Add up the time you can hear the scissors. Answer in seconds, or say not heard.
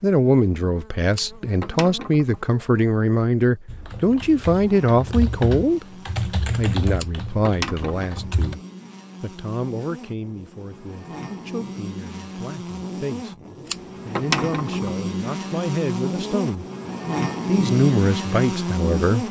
4 s.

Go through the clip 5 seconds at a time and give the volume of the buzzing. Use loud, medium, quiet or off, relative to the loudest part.
quiet, quiet, medium, loud.